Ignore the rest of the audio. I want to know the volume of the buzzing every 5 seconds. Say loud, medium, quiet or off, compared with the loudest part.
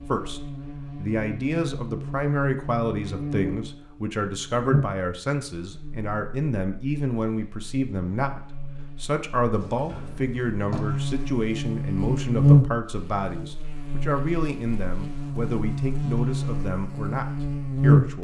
medium, quiet, loud, loud.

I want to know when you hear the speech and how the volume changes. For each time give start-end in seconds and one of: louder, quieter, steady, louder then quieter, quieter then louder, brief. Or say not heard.
0.1-18.1 steady.